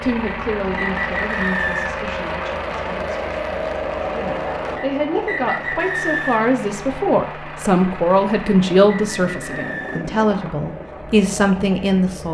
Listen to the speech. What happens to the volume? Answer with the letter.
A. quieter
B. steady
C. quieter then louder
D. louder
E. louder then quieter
D.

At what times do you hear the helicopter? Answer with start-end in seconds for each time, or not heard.
0.0-12.2.